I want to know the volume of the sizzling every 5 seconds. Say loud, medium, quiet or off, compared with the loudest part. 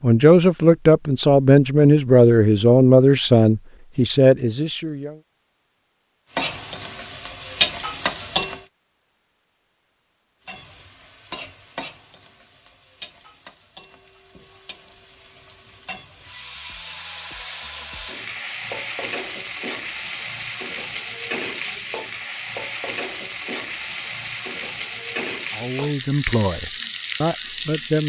off, loud, quiet, medium, medium, medium.